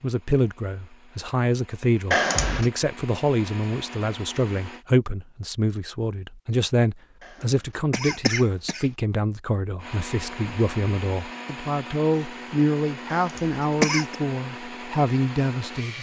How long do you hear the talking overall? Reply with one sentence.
The talking can be heard for 16 seconds in total.